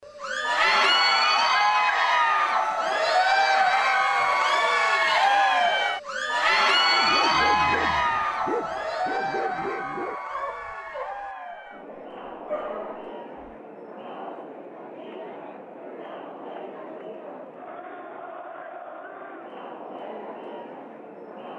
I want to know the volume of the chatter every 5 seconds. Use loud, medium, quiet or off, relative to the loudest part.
loud, loud, quiet, quiet, quiet.